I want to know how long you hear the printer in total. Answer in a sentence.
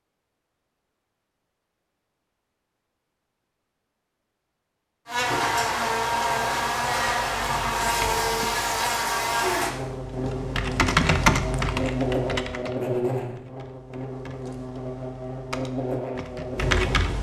You can't hear the printer here.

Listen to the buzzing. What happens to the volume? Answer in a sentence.
The loudness of the buzzing goes down.